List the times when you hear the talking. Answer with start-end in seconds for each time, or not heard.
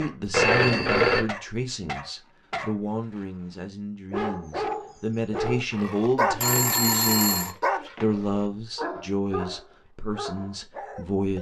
0.0-11.3.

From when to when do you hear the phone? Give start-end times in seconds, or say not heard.
0.3-1.2, 6.4-7.5.